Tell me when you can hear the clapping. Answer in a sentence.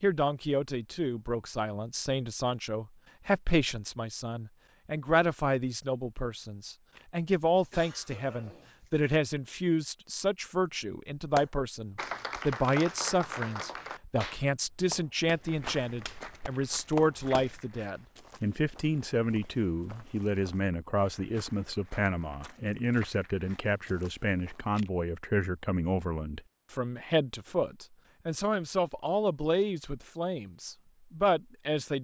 You can hear the clapping from 11.3 to 17.6 s.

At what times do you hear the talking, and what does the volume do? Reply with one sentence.
You can hear the talking from 0.0 to 31.9 s, at a steady volume.